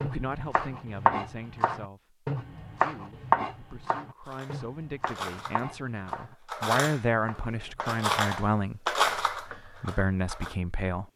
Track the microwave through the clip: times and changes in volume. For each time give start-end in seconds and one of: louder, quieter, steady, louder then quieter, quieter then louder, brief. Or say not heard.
not heard.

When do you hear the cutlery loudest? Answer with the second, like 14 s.
9 s.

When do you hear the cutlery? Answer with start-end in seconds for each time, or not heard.
4.2-10.6.